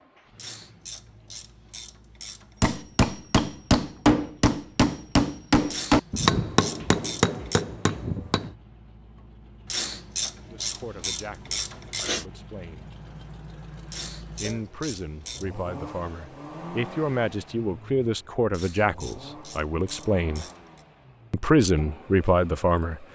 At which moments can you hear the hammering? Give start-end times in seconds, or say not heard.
2.6-8.6.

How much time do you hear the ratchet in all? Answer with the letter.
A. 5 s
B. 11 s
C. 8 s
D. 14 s
B.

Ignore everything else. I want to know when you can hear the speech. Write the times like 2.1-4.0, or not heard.
10.4-12.9, 14.3-20.4, 21.3-23.1.